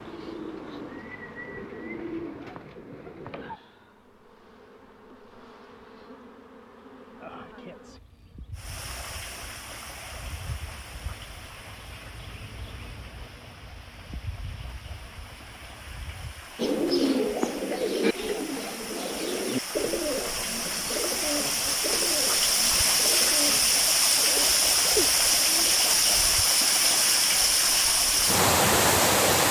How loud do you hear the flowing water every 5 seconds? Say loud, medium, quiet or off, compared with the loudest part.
off, quiet, quiet, quiet, loud, loud.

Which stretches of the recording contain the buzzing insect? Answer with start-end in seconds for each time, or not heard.
0.0-16.6.